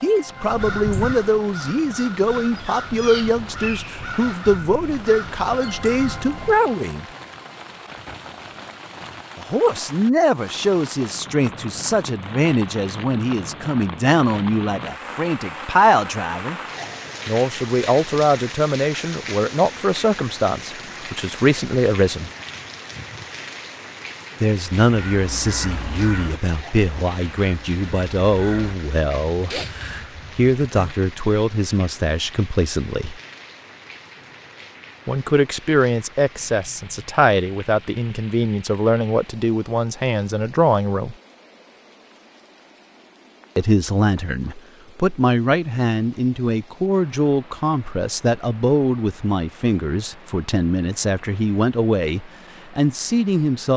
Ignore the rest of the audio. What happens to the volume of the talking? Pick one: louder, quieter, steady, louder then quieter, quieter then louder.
steady.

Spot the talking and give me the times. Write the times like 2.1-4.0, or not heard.
0.0-7.0, 9.3-16.6, 17.2-22.3, 24.4-33.2, 35.0-41.1, 43.5-53.7.